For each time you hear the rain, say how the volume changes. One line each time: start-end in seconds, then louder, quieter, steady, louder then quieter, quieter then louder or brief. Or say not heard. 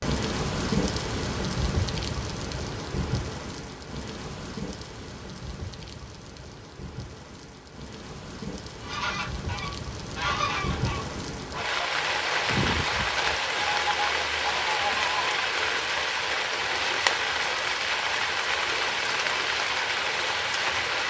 0.0-21.0 quieter then louder.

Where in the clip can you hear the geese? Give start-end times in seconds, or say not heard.
8.8-15.2.